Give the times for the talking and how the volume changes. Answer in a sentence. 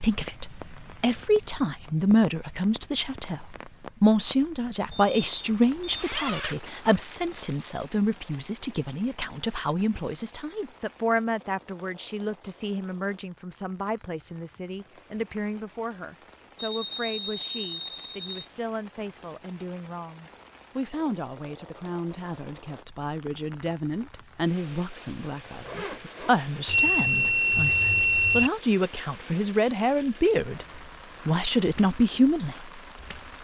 You can hear the talking from 0.0 to 32.8 s, getting quieter then louder.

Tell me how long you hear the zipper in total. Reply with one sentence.
The zipper can be heard for 3 seconds in total.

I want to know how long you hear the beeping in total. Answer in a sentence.
The beeping can be heard for 5 seconds in total.